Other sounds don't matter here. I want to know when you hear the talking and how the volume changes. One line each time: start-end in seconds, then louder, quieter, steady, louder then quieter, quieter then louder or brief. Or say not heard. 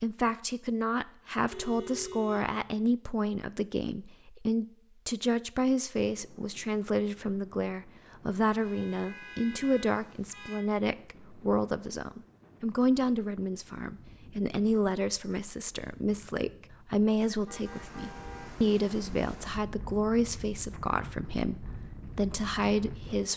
0.0-23.3 steady.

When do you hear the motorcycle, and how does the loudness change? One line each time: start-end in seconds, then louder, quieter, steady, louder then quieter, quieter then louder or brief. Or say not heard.
not heard.